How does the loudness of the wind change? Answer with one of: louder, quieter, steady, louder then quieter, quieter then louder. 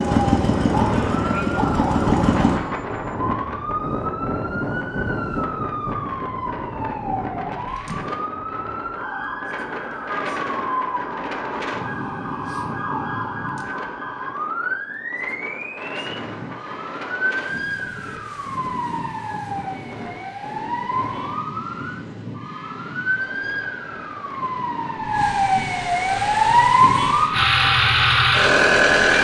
quieter.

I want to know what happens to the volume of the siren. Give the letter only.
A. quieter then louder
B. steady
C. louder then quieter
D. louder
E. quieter
D.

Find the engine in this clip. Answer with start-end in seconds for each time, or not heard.
0.0-2.6, 26.1-29.1.